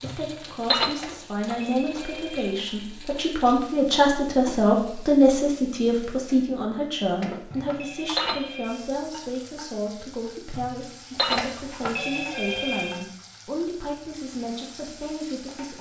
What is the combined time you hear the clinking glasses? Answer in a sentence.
You can hear the clinking glasses for 3 seconds altogether.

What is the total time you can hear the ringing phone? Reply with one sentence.
You can hear the ringing phone for 5 seconds altogether.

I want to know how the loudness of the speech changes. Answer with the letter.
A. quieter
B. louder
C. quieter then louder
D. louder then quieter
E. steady
D.